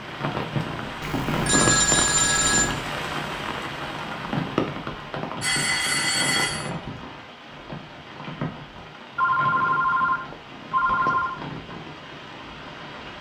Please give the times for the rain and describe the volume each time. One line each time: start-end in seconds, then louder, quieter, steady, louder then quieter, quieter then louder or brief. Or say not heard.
0.0-13.1 quieter.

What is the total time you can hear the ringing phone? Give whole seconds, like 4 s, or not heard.
5 s.